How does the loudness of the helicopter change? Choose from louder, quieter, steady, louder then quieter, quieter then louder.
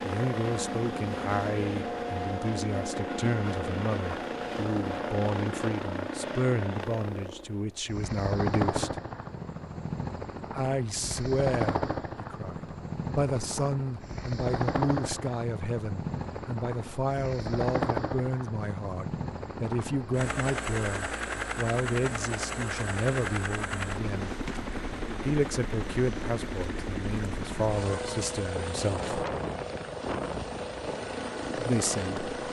steady.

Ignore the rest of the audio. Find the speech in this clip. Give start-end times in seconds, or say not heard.
0.0-8.9, 10.5-24.4, 25.2-29.1, 31.6-32.3.